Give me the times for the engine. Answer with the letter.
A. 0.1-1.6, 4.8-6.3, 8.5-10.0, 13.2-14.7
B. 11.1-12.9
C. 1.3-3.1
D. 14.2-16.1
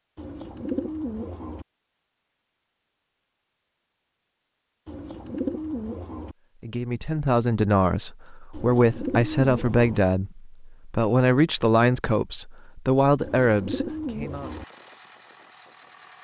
D.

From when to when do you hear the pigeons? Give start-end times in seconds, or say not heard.
0.1-1.6, 4.8-6.3, 8.5-10.0, 13.2-14.7.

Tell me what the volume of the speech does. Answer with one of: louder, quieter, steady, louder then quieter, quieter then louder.
steady.